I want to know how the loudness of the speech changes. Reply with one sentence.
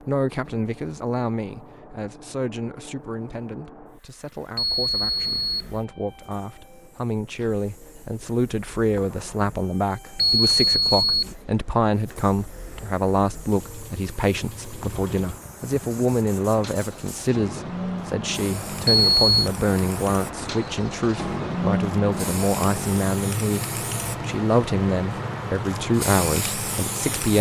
The loudness of the speech goes up.